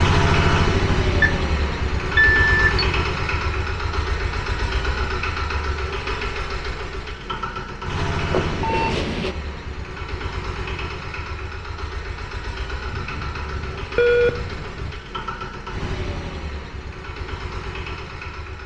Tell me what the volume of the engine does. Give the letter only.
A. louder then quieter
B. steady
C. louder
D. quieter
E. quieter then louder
D.